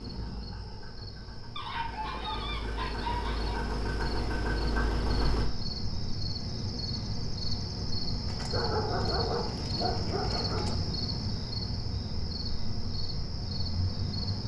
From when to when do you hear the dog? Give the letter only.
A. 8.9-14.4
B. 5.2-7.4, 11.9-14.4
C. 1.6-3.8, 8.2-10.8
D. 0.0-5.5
C.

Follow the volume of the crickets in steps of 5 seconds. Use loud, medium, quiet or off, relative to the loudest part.
medium, loud, loud.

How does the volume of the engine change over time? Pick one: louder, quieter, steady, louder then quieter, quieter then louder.
louder.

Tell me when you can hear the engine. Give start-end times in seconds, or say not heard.
0.0-5.5.